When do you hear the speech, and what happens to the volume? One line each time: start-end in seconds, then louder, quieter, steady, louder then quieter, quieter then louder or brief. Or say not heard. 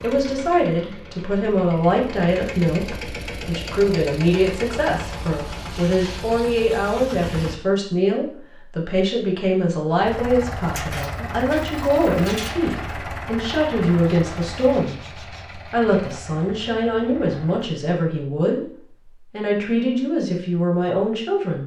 0.0-21.6 steady.